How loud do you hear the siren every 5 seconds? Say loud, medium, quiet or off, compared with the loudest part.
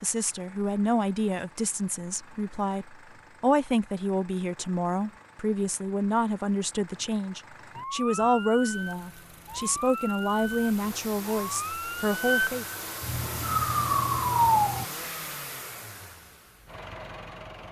off, medium, loud, off.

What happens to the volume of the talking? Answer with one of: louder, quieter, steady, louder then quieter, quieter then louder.
steady.